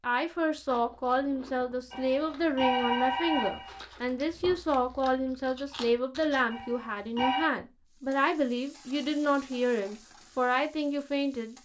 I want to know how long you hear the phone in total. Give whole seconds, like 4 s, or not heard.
3 s.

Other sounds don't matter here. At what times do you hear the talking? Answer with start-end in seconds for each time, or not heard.
0.0-11.6.